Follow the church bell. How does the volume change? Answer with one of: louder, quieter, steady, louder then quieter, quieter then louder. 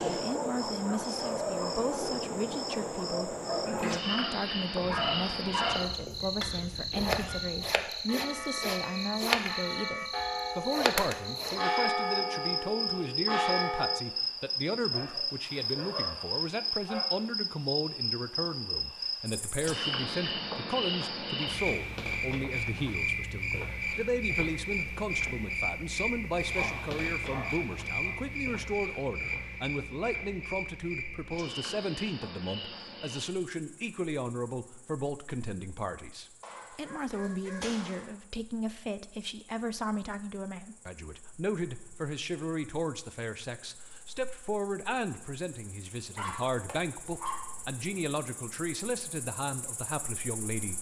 louder.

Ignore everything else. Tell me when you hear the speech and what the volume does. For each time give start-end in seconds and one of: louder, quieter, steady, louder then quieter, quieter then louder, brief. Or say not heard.
0.1-50.7 steady.